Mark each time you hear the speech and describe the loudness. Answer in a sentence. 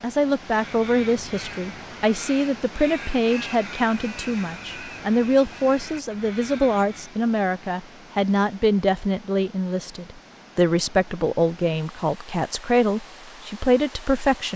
The speech can be heard from 0.0 to 14.5 s, at a steady volume.